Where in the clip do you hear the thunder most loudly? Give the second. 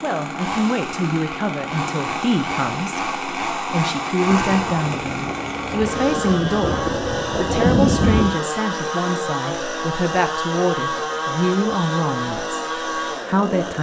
8 s.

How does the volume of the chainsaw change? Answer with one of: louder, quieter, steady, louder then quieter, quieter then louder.
steady.